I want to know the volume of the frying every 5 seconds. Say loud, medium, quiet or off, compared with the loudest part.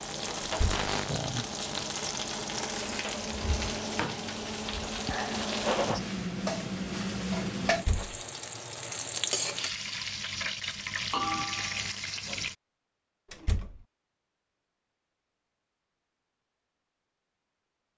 loud, loud, loud, off.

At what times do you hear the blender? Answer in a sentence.
You can't hear the blender here.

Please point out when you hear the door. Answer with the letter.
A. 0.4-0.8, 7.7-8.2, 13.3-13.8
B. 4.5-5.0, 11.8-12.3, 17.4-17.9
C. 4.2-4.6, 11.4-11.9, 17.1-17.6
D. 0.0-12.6
A.